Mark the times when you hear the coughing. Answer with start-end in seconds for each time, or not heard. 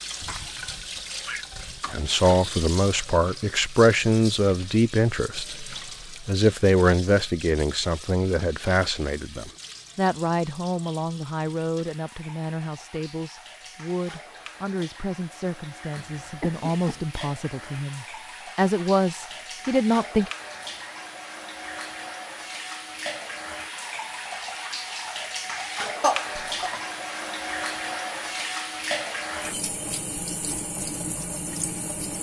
0.2-1.9, 15.9-17.1, 26.0-26.8.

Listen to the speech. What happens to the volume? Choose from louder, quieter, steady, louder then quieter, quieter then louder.
quieter then louder.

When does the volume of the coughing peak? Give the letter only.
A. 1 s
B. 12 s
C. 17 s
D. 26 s
D.